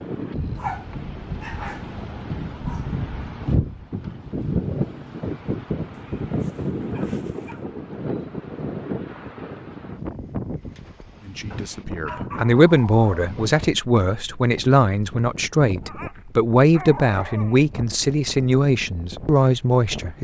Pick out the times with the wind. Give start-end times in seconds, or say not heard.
0.0-20.1.